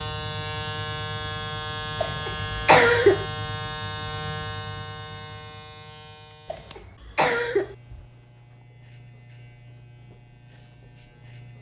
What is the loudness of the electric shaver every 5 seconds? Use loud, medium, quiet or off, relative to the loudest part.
loud, quiet, quiet.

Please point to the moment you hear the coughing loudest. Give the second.
3 s.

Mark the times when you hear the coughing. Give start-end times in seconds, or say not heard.
2.0-3.2, 6.5-7.8.